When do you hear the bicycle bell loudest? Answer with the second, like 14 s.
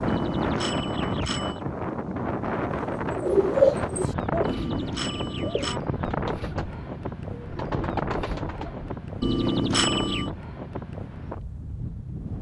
10 s.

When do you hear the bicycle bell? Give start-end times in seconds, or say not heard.
0.1-1.6, 4.4-5.8, 9.2-10.3.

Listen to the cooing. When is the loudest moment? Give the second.
4 s.